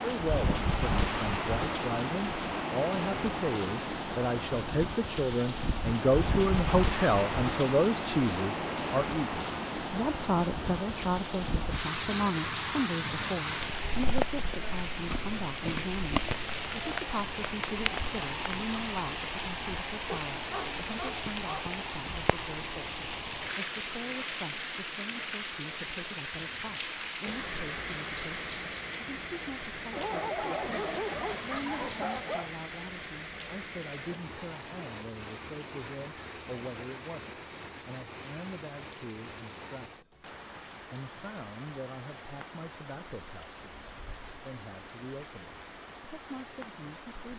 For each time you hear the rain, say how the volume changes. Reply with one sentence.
You can hear the rain from 0.0 to 47.3 s, getting quieter.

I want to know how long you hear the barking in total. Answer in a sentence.
The barking can be heard for 4 seconds in total.